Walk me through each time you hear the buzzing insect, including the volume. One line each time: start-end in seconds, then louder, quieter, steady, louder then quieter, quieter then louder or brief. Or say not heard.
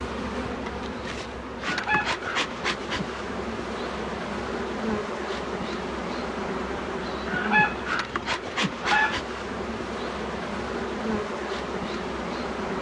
0.0-12.7 steady.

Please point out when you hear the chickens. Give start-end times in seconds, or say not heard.
1.6-3.2, 7.2-9.2.